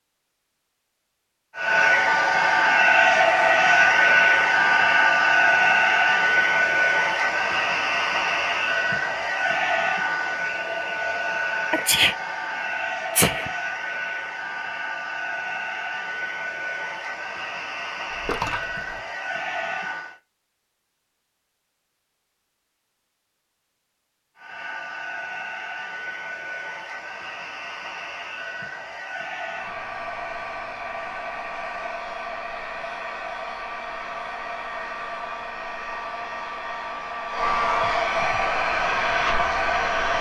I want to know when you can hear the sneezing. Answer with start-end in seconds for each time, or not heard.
11.7-13.5.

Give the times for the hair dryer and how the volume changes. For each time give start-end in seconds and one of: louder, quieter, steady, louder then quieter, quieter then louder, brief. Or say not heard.
1.6-20.1 quieter
24.4-40.1 louder.